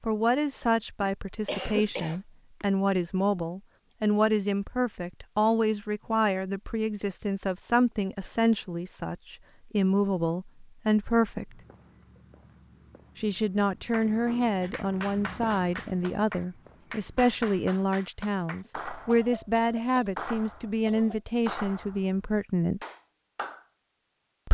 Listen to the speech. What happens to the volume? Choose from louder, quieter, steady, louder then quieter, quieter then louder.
steady.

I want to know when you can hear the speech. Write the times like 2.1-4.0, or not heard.
0.0-11.6, 13.2-22.8.